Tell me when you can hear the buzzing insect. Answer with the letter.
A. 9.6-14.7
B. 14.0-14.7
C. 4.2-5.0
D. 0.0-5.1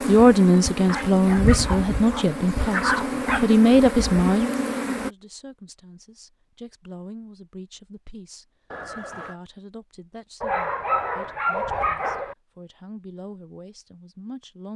D.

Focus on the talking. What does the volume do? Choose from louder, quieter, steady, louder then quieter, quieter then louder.
quieter.